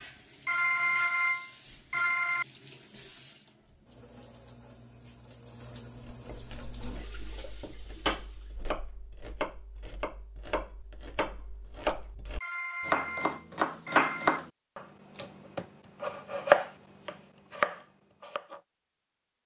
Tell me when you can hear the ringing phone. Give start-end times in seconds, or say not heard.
0.5-2.5, 12.4-14.4.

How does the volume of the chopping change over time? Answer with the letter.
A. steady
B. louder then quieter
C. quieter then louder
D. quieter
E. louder
E.